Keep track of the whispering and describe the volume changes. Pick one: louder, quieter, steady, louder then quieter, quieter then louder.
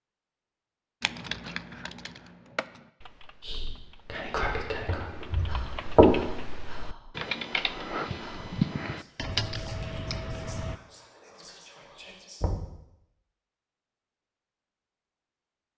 quieter.